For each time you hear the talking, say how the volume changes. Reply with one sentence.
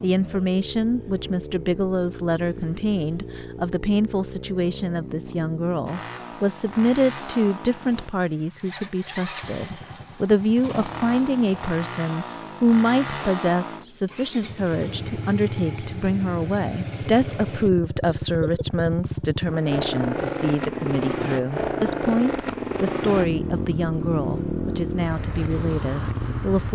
You can hear the talking from 0.0 to 26.7 s, at a steady volume.